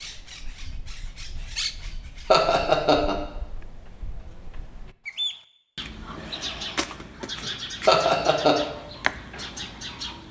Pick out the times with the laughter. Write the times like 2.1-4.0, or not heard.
2.3-3.1, 7.8-8.6.